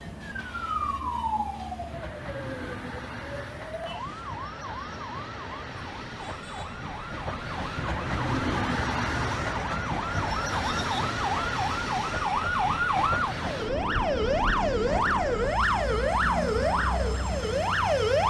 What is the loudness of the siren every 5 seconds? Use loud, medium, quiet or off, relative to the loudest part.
medium, quiet, loud, loud.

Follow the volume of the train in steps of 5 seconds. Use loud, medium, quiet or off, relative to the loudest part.
medium, loud, loud, loud.